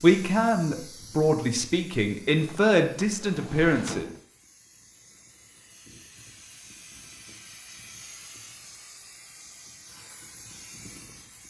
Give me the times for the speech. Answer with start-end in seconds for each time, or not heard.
0.0-4.0.